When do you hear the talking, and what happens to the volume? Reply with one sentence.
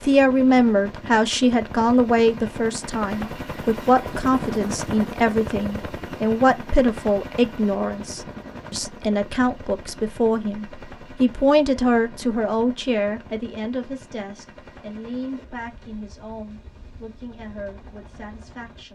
You can hear the talking from 0.0 to 18.9 s, getting quieter.